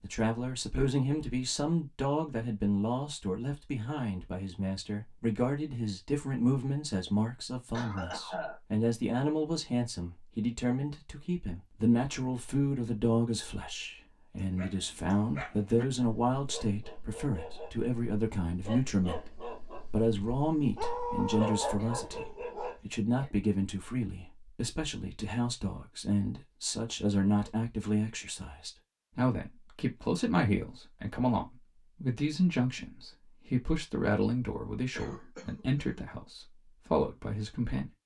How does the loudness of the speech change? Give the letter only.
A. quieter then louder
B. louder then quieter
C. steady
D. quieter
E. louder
C.